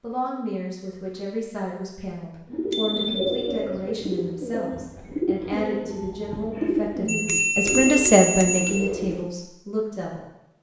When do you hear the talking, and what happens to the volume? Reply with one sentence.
The talking can be heard from 0.0 to 10.2 s, getting louder.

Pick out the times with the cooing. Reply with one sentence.
The cooing can be heard from 2.5 to 9.3 s.